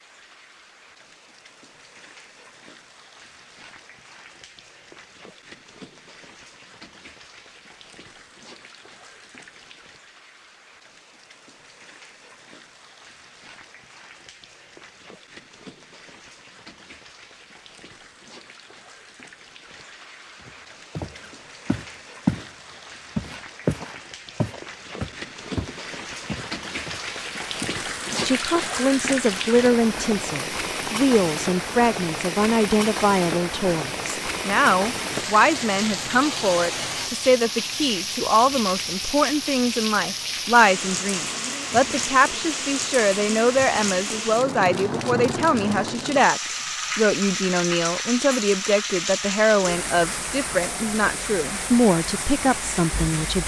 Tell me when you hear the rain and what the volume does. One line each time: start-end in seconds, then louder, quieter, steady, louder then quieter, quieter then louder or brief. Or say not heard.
0.0-53.4 louder.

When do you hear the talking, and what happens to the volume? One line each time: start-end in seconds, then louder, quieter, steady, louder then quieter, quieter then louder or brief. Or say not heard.
28.2-53.4 steady.